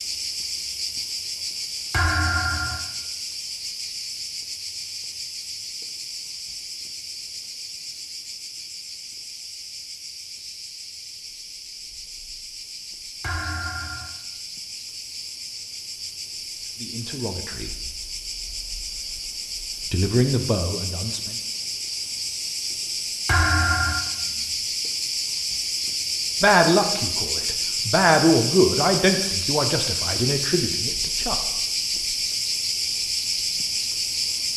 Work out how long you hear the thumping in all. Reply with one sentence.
You can hear the thumping for 3 seconds altogether.